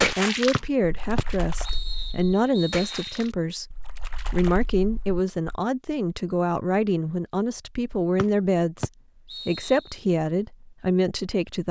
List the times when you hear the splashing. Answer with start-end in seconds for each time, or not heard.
0.0-5.6.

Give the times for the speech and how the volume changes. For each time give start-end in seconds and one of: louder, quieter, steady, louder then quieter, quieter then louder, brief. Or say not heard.
0.1-11.6 steady.